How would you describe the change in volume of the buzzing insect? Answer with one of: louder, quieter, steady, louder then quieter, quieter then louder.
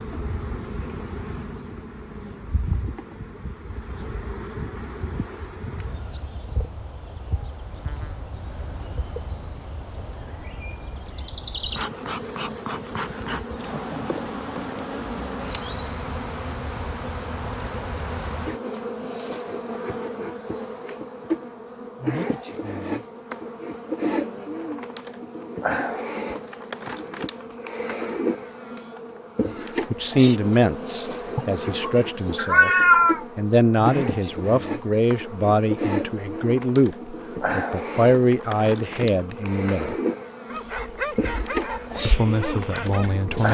louder.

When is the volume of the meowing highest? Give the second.
33 s.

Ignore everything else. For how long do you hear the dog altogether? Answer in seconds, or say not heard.
3 s.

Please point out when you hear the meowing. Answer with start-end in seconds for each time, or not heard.
31.4-33.2.